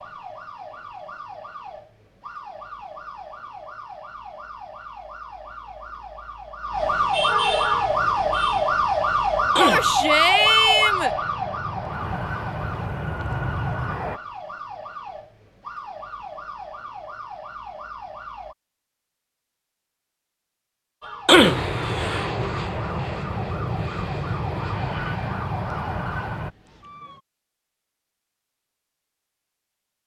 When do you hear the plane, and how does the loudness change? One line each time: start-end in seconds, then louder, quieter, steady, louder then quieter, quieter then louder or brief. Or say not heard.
7.8-14.2 louder
21.3-26.6 steady.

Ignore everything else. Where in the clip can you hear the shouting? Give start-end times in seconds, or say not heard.
9.6-11.2.